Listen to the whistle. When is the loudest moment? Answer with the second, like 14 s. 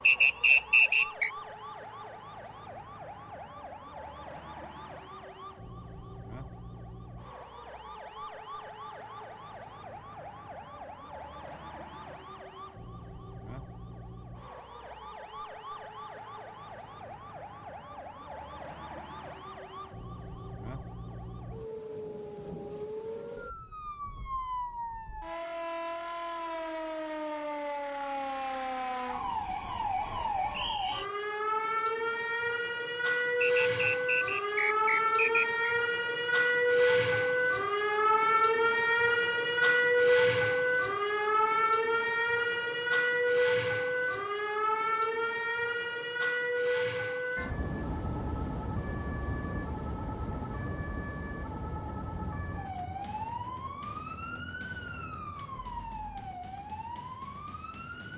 1 s.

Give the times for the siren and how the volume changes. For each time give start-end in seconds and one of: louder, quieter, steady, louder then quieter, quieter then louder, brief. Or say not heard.
0.0-58.1 louder then quieter.